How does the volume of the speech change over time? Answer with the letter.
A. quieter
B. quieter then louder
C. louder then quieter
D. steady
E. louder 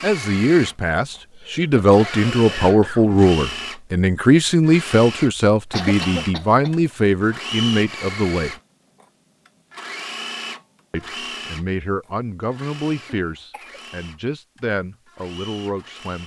A.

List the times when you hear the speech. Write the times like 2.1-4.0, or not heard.
0.0-8.6, 10.9-16.2.